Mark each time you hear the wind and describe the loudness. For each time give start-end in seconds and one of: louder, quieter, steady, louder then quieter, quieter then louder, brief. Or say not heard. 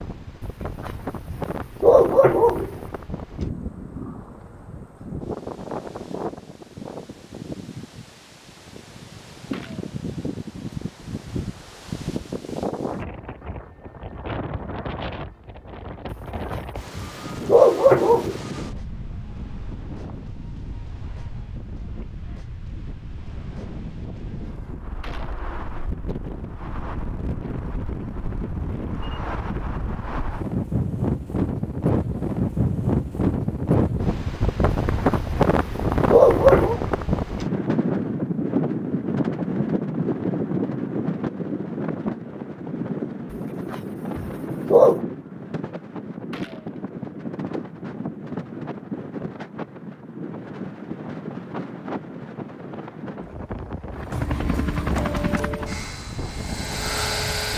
0.0-57.5 louder then quieter.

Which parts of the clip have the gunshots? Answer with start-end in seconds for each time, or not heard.
9.5-10.0, 25.0-25.4, 46.3-46.9.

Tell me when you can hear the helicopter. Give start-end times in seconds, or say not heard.
53.9-57.5.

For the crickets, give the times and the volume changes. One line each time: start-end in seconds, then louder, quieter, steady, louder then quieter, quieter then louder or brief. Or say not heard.
not heard.